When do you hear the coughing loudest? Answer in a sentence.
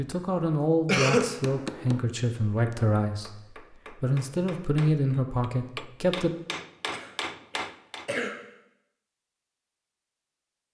The loudest moment of the coughing is at 1 second.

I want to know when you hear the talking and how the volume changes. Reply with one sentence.
The talking can be heard from 0.0 to 6.3 s, at a steady volume.